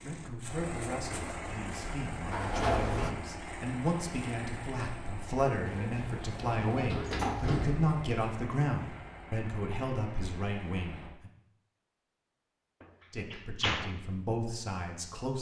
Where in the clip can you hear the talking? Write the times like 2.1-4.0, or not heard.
0.0-11.3, 13.1-15.3.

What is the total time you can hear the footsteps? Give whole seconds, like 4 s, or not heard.
not heard.